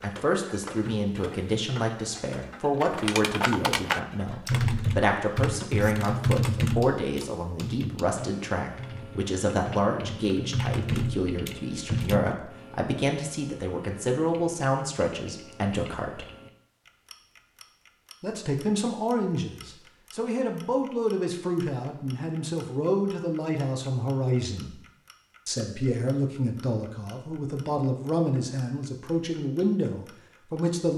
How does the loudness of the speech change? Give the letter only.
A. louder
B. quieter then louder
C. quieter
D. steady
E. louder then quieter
D.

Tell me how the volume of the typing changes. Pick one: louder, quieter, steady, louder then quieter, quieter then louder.
quieter then louder.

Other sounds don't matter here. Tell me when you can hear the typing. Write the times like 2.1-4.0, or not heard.
2.8-12.3.